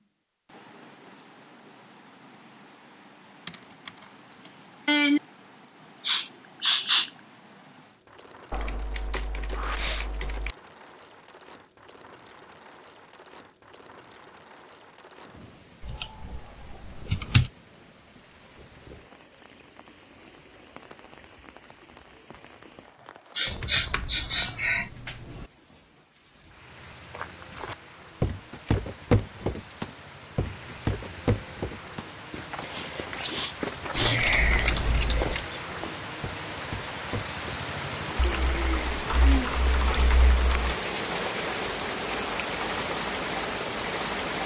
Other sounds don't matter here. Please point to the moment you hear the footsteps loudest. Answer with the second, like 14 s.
29 s.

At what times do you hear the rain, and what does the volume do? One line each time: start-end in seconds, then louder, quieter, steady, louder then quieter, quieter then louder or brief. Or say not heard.
0.0-44.4 louder.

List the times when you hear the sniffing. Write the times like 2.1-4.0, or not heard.
6.0-7.1, 23.4-24.9, 33.3-34.2.